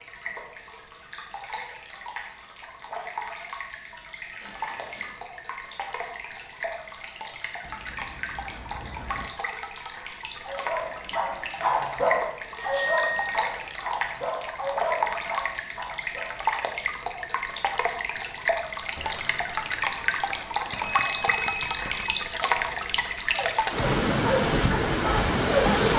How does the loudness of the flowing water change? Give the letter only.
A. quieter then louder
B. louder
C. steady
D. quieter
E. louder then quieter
B.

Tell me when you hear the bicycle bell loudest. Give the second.
13 s.